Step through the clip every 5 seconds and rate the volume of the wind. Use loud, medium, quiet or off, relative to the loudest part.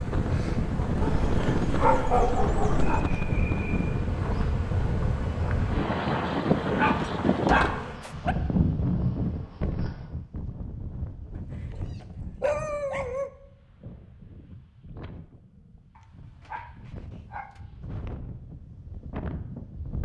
loud, loud, quiet, quiet.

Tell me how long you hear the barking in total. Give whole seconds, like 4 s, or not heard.
7 s.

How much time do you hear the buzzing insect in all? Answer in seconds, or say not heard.
10 s.